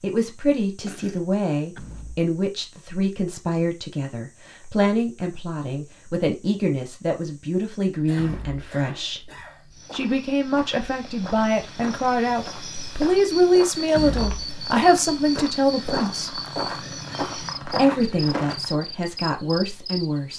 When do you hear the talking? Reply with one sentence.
You can hear the talking from 0.0 to 9.3 s, from 9.9 to 16.4 s and from 17.6 to 20.3 s.